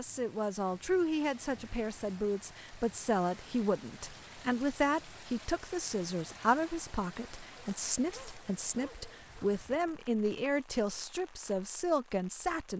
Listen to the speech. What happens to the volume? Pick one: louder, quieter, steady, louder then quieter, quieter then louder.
steady.